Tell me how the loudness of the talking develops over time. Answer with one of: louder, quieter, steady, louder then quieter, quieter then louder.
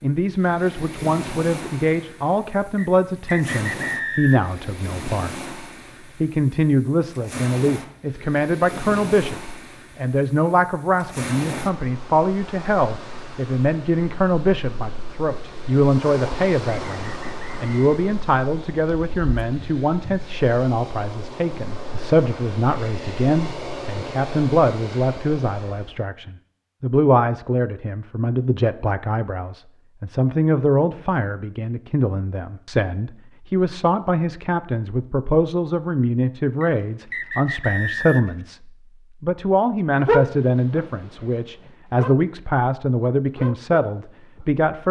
steady.